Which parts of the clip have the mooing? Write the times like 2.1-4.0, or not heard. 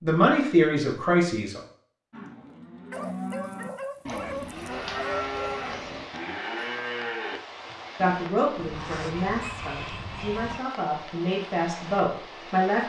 2.1-8.2.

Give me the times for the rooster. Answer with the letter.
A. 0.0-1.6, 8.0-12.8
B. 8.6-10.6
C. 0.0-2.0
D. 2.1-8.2
B.